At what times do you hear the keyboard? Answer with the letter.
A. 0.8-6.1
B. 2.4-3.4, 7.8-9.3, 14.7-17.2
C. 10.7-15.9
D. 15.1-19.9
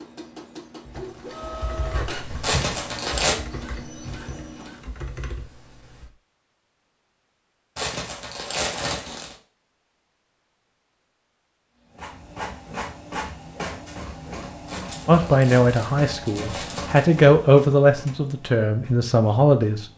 A.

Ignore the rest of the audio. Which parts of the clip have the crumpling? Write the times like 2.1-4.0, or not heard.
2.4-3.4, 7.8-9.3, 14.7-17.2.